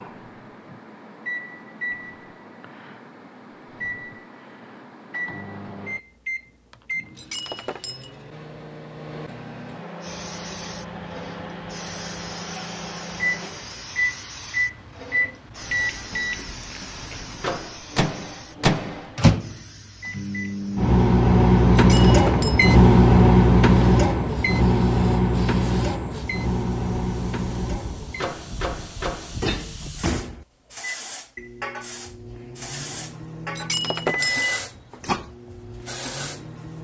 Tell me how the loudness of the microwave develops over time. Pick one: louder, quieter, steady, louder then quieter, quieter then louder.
louder then quieter.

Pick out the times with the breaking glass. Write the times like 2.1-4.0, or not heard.
7.2-8.2, 21.8-22.7, 33.5-34.5.